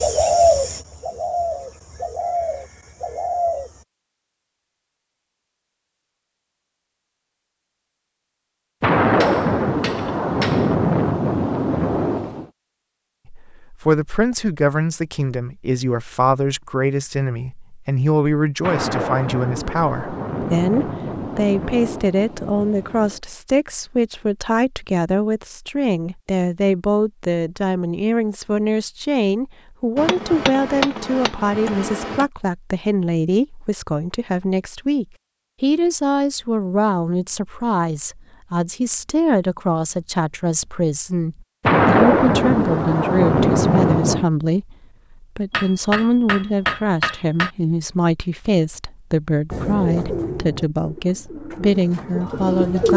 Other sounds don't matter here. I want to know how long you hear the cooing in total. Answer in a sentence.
You can hear the cooing for 7 seconds altogether.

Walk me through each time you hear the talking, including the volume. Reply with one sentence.
The talking can be heard from 13.2 to 52.9 s, at a steady volume.